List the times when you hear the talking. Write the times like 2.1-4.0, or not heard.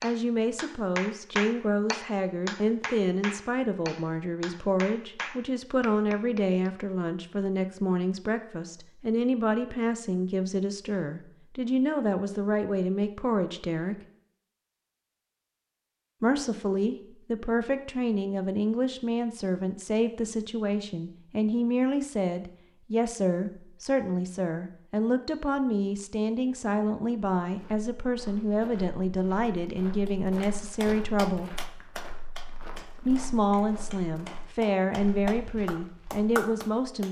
0.0-13.9, 16.2-31.5, 33.0-37.0.